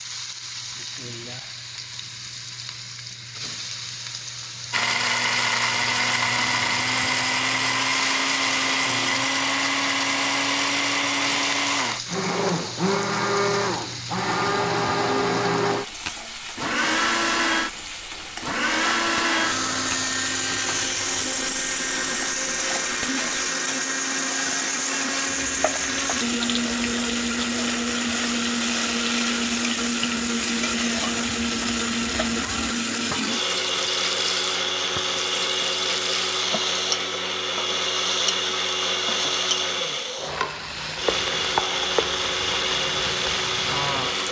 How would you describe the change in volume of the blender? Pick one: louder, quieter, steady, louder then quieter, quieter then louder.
steady.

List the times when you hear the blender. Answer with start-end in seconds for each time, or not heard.
4.7-44.2.